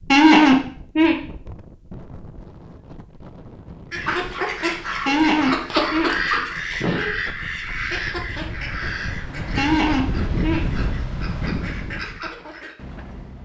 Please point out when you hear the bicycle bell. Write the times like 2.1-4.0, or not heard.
not heard.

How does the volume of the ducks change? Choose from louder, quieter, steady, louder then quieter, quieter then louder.
quieter.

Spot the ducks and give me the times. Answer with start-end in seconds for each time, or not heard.
3.9-12.8.